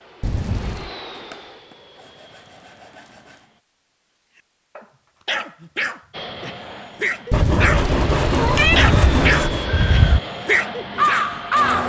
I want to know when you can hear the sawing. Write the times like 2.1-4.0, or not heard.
1.1-3.5, 7.3-9.7.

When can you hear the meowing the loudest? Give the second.
9 s.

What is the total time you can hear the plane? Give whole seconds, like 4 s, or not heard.
9 s.